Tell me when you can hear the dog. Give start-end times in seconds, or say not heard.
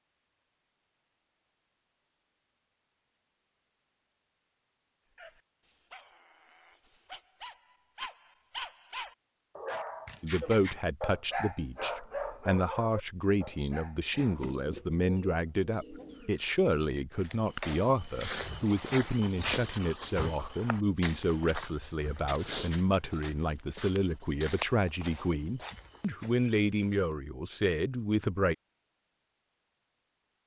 5.2-14.6.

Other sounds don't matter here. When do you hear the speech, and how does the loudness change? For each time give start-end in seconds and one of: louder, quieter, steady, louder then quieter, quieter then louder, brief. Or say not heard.
10.2-28.6 steady.